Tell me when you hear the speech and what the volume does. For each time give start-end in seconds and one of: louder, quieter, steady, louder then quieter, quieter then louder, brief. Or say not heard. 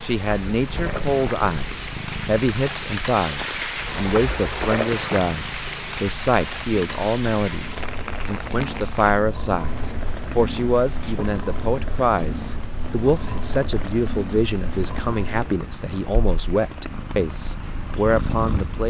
0.0-18.8 steady.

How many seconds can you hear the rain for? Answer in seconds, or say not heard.
19 s.